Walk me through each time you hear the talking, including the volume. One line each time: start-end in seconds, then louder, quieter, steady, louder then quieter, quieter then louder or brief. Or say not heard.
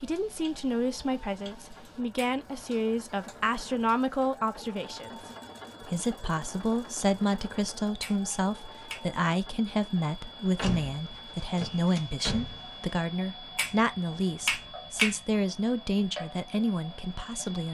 0.0-17.6 steady.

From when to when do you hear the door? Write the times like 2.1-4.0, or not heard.
10.6-12.9.